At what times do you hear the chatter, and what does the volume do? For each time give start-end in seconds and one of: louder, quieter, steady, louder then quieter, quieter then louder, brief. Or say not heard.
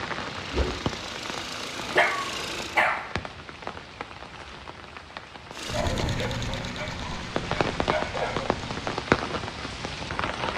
not heard.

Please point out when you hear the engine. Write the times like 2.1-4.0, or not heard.
0.1-2.9, 5.5-8.9.